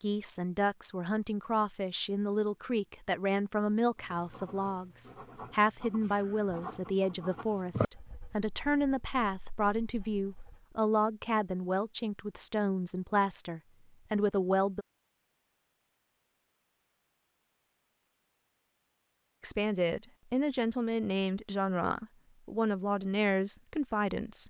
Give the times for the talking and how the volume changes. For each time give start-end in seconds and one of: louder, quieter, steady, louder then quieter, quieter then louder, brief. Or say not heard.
0.0-14.8 steady
19.4-24.4 steady.